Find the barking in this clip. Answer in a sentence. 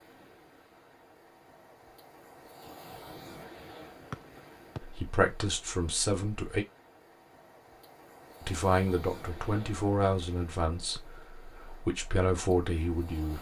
The barking can't be heard in this clip.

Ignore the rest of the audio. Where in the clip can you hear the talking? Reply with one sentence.
You can hear the talking from 4.8 to 6.7 s and from 8.4 to 13.3 s.